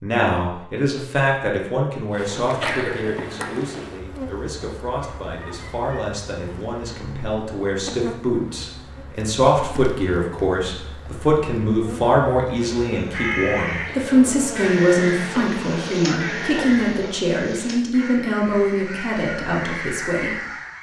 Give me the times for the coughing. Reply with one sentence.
You can hear the coughing from 2.6 to 3.9 s.